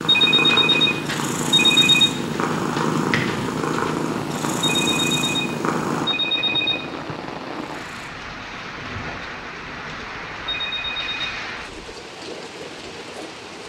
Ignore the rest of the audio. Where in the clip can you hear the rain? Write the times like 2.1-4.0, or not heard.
0.0-13.6.